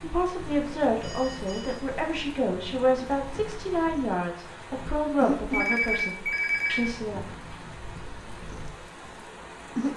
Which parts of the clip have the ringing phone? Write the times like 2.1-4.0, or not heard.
1.0-1.8, 5.5-6.9.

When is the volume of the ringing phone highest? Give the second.
6 s.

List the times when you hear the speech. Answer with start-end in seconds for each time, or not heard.
0.0-7.2.